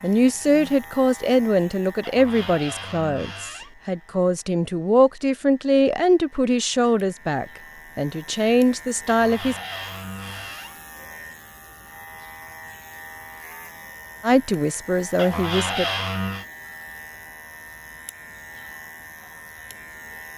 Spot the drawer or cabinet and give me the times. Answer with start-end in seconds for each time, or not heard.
2.0-3.8, 9.1-10.8, 15.2-16.4.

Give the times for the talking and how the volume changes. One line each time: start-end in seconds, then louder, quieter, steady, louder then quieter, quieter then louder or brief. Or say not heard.
0.0-9.6 steady
14.2-15.8 brief.